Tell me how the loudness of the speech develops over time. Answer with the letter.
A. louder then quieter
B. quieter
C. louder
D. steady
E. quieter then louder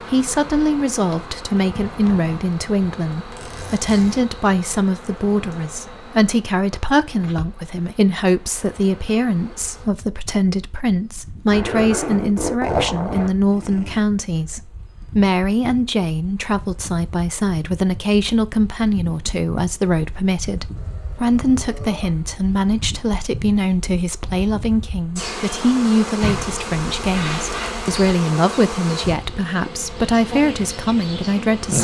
D.